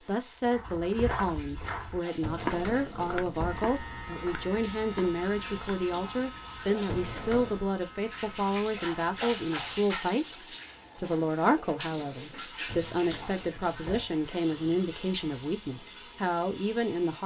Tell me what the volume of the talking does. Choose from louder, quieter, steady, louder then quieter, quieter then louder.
steady.